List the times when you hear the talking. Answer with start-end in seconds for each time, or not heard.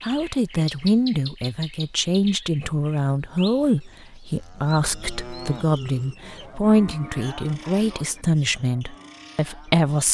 0.0-10.0.